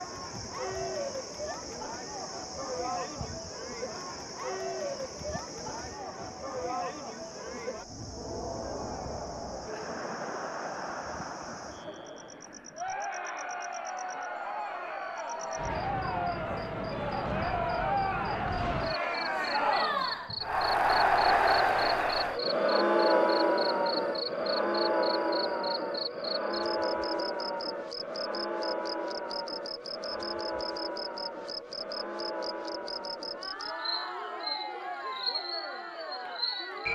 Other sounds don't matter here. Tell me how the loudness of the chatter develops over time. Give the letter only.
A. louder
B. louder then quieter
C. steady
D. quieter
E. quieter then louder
B.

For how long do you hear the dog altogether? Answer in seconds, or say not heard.
not heard.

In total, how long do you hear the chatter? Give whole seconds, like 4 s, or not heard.
37 s.